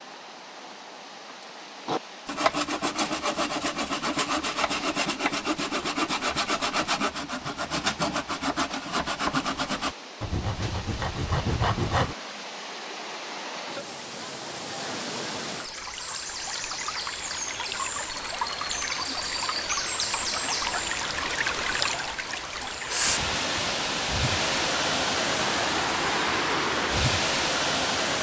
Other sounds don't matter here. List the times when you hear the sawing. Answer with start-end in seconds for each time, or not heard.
1.9-12.2.